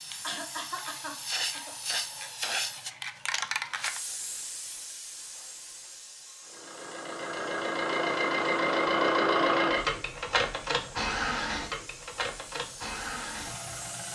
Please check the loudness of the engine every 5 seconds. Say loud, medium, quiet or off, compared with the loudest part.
off, loud, medium.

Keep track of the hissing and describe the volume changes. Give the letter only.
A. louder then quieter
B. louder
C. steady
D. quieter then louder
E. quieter
D.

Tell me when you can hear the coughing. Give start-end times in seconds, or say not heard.
0.2-1.8.